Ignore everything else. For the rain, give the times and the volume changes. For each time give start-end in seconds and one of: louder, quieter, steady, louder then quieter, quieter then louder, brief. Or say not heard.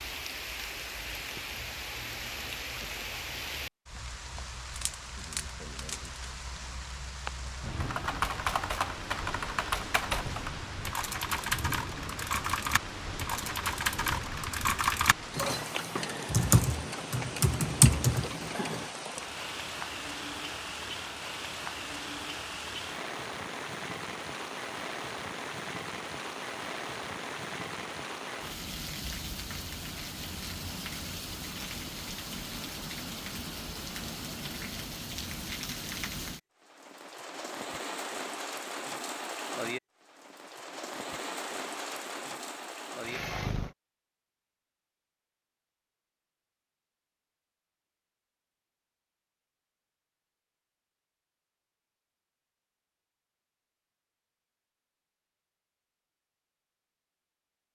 0.0-43.8 steady.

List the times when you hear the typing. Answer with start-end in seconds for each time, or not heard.
7.8-18.9.